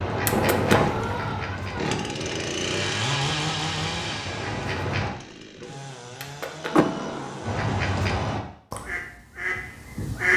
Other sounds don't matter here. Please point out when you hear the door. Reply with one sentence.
The door can be heard from 0.3 to 1.1 s and from 6.7 to 7.6 s.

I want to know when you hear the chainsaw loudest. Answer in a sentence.
The loudest moment of the chainsaw is at 3 seconds.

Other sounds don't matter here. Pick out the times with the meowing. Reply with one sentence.
The meowing can be heard from 0.2 to 2.1 s and from 6.2 to 7.2 s.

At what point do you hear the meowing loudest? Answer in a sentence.
The volume of the meowing peaks at 1 second.